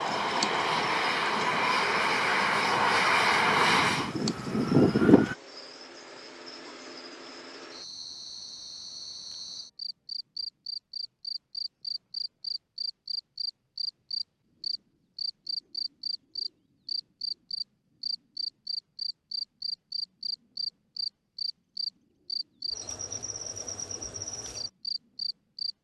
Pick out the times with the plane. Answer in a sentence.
The plane can be heard from 0.0 to 5.3 s.